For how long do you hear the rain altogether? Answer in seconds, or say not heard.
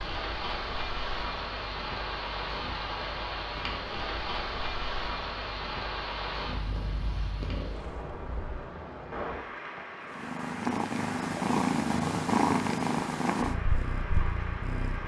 15 s.